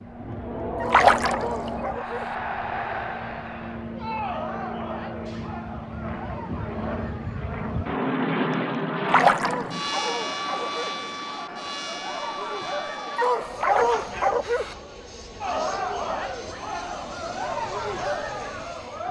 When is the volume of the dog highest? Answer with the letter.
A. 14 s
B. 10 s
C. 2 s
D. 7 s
A.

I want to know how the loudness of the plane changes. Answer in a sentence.
The loudness of the plane goes up, then down.